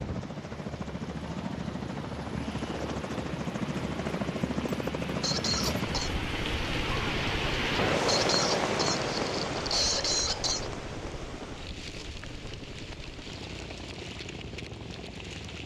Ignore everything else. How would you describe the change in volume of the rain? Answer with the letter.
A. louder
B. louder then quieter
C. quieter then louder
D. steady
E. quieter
B.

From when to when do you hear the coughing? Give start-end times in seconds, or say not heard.
5.2-6.1, 8.1-10.7.